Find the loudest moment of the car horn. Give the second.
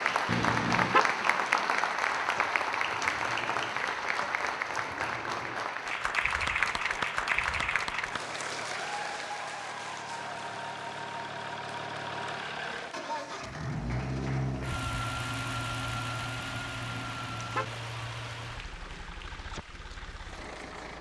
1 s.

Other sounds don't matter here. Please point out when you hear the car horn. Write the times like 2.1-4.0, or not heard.
0.2-1.1, 16.9-17.8.